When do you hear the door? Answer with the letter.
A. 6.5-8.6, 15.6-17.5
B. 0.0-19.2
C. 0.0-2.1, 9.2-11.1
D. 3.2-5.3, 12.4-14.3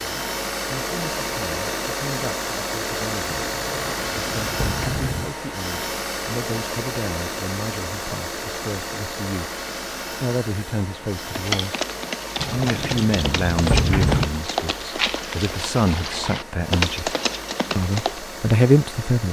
D.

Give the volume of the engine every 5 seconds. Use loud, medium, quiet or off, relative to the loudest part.
loud, loud, medium, medium.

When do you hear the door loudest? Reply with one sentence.
The loudest moment of the door is at 14 seconds.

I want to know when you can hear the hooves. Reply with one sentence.
You can hear the hooves from 11.2 to 18.2 s.